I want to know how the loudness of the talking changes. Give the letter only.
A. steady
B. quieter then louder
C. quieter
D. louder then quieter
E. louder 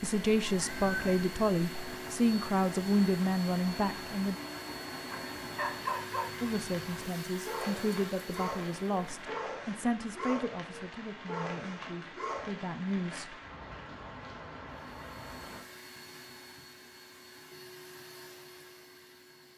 C.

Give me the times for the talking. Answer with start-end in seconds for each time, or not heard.
0.0-4.3, 6.4-13.4.